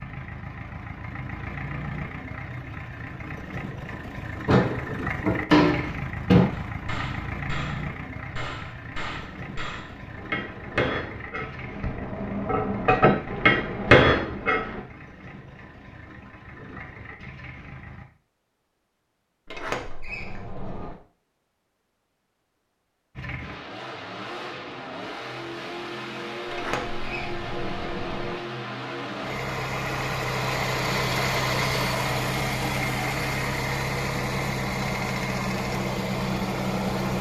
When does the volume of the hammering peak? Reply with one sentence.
The volume of the hammering peaks at 14 seconds.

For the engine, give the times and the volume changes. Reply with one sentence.
You can hear the engine from 0.0 to 18.1 s, getting quieter; and from 23.1 to 37.1 s, getting louder.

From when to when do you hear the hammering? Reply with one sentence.
You can hear the hammering from 6.5 to 14.8 s.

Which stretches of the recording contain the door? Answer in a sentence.
The door can be heard from 4.5 to 6.5 s, from 19.5 to 20.9 s and from 26.5 to 28.4 s.